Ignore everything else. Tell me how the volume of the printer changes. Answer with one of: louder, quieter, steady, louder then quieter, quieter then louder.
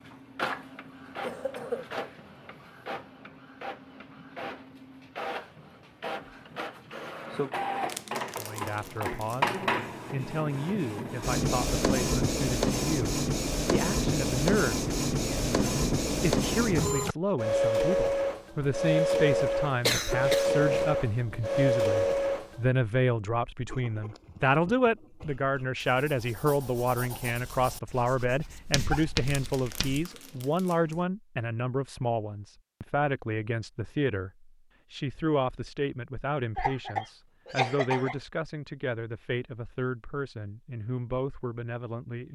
louder.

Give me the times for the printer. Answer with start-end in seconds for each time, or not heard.
0.0-22.6.